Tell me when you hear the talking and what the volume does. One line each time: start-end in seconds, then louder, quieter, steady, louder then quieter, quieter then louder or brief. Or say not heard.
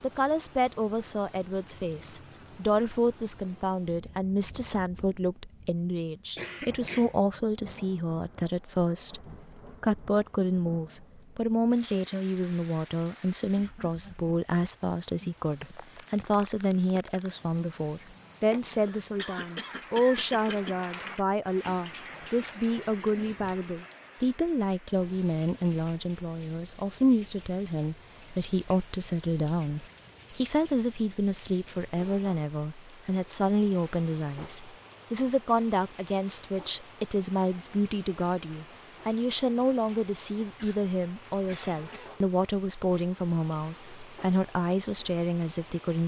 0.0-46.0 steady.